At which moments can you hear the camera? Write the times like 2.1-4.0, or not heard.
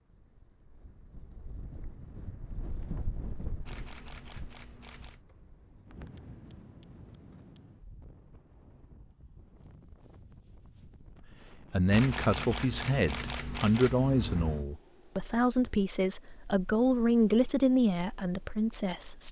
3.6-5.2, 11.9-14.7.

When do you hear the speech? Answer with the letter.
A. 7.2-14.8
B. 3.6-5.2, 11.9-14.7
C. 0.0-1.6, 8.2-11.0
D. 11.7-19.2
D.